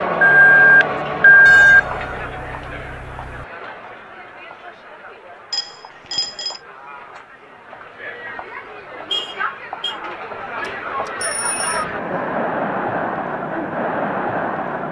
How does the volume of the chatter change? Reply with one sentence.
The loudness of the chatter goes down, then up.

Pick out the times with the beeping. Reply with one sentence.
You can hear the beeping from 0.2 to 1.8 s, from 5.5 to 6.6 s and from 10.7 to 11.8 s.